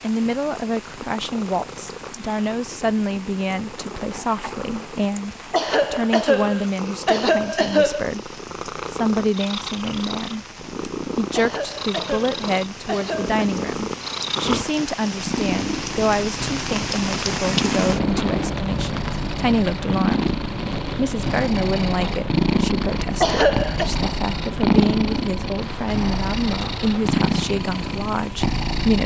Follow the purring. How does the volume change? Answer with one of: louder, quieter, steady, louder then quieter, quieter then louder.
louder.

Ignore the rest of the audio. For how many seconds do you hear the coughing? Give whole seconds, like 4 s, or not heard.
5 s.